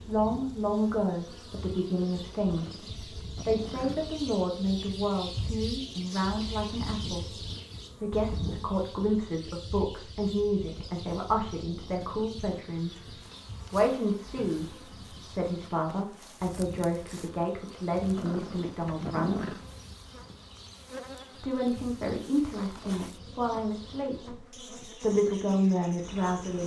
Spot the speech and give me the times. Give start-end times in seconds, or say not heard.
0.1-13.1, 13.7-19.6, 21.4-26.6.